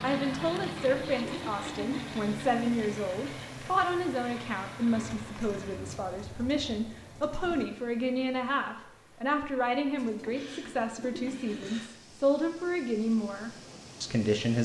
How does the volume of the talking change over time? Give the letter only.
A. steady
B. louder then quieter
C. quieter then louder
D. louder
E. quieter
A.